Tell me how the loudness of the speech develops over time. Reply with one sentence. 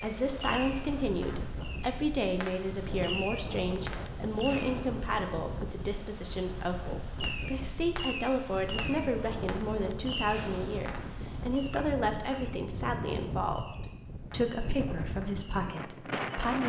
The loudness of the speech stays about the same.